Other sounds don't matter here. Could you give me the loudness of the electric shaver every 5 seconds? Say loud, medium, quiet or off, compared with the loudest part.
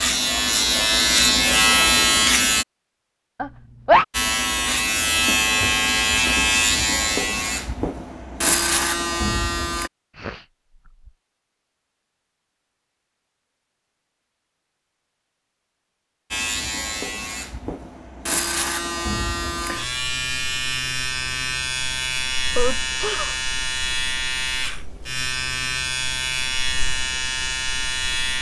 loud, loud, off, medium, medium, medium.